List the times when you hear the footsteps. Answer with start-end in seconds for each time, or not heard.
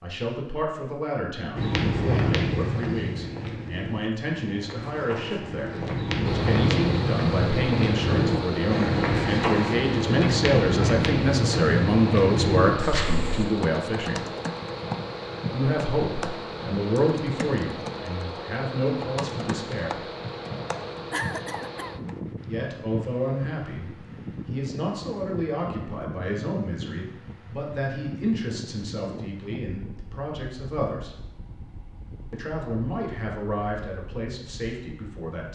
1.6-13.4.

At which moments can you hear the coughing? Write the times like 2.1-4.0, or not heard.
21.1-21.9.